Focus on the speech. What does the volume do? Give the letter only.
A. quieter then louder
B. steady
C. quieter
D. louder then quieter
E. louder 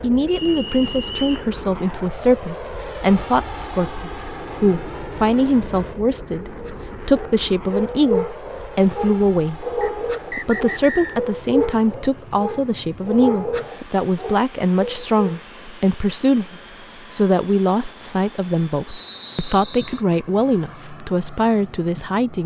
B.